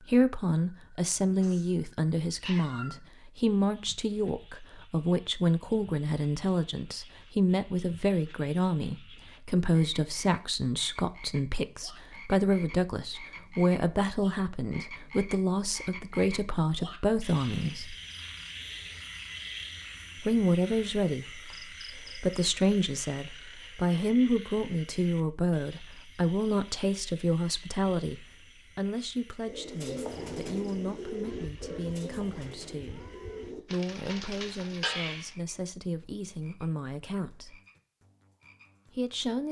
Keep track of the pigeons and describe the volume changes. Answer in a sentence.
The loudness of the pigeons goes down, then up.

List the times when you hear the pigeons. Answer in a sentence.
You can hear the pigeons from 29.4 to 35.4 s.